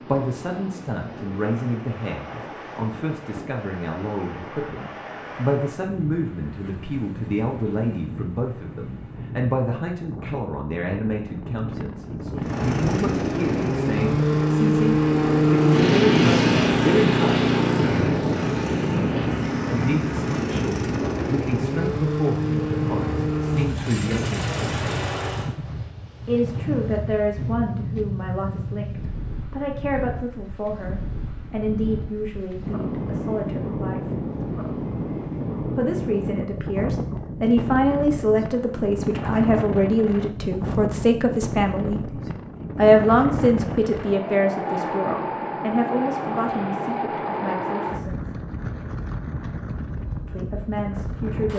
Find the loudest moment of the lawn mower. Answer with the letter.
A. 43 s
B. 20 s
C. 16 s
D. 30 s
C.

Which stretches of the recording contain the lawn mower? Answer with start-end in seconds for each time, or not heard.
12.4-25.6.